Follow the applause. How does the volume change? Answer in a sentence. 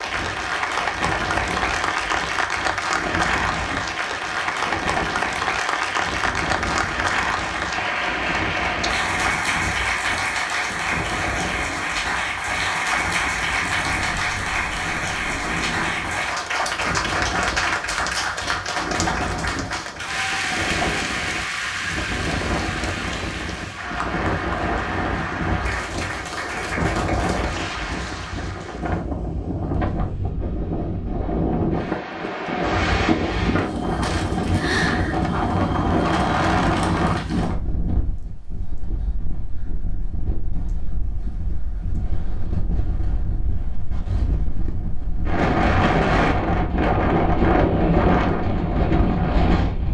The volume of the applause goes down.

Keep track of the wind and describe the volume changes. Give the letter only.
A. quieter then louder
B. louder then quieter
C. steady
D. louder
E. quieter
D.